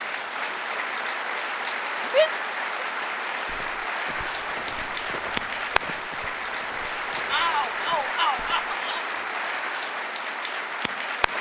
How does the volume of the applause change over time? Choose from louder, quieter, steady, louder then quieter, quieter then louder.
steady.